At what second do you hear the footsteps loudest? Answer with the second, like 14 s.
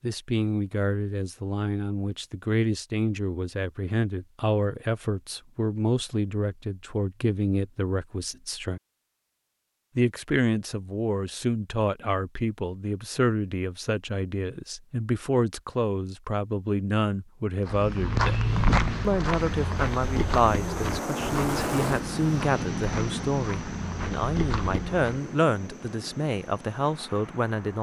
19 s.